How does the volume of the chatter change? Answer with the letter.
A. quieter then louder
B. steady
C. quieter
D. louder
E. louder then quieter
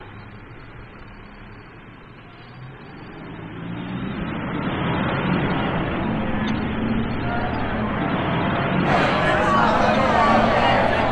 D.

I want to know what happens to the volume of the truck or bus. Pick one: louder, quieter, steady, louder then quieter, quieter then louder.
louder.